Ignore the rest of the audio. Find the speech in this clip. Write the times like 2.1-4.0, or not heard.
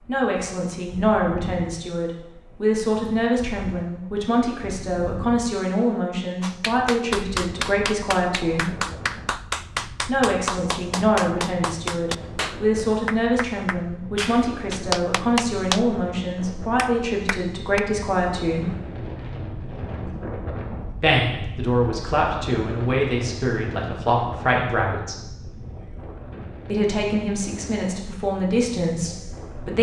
0.1-8.7, 10.0-18.7, 21.0-25.1, 26.6-29.7.